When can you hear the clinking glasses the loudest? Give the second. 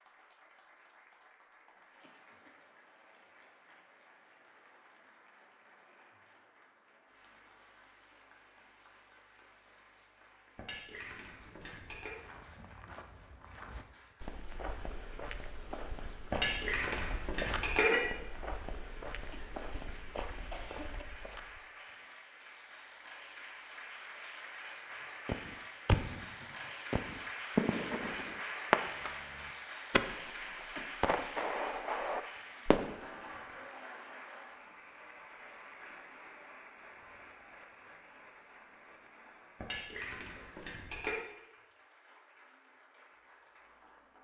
18 s.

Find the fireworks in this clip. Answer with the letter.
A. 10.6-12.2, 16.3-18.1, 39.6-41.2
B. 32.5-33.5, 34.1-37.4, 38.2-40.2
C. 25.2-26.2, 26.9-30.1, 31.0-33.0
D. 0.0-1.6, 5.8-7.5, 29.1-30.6
C.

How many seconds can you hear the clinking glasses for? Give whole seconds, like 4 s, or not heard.
5 s.